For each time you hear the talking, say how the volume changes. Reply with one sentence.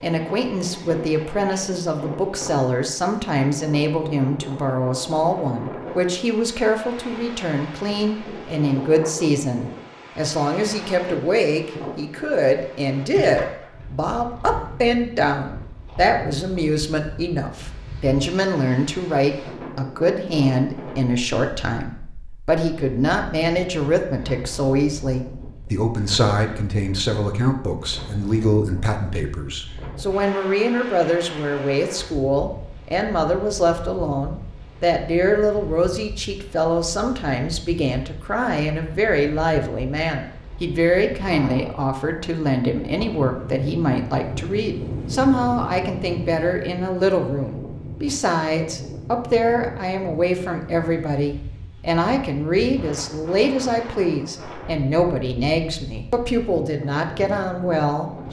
The talking can be heard from 0.0 to 58.2 s, at a steady volume.